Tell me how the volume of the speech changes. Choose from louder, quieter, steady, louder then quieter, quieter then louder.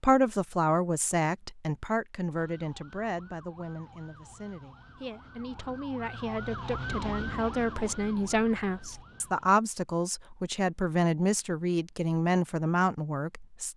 quieter then louder.